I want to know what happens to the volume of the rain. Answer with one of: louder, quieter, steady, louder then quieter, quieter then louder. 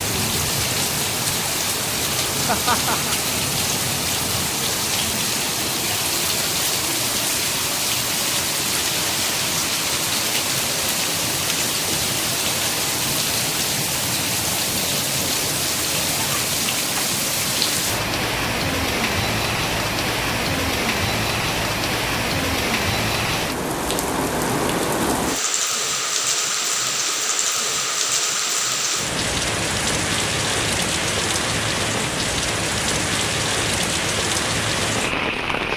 steady.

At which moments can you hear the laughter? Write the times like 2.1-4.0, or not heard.
2.5-3.1.